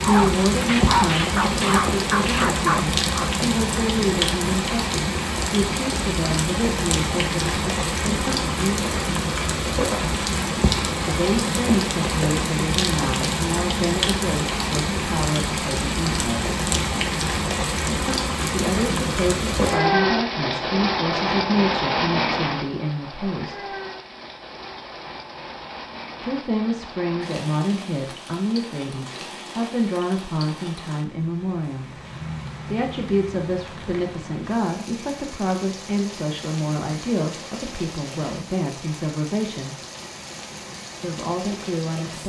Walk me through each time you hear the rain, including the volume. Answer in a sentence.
You can hear the rain from 0.0 to 42.2 s, getting quieter.